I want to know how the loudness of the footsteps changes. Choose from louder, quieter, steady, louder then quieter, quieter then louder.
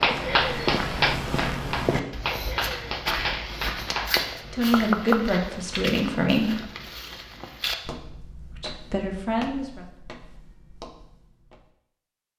quieter.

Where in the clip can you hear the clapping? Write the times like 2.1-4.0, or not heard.
0.0-5.2.